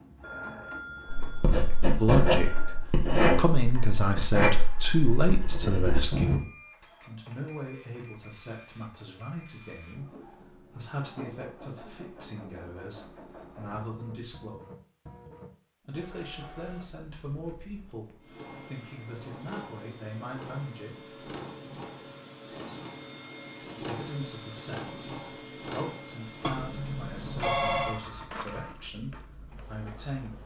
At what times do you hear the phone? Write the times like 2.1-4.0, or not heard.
0.2-2.9, 26.4-28.0.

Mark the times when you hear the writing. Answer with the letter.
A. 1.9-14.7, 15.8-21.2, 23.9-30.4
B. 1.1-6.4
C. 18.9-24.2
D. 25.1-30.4
B.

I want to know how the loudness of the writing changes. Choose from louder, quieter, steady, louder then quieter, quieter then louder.
quieter.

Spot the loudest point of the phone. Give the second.
28 s.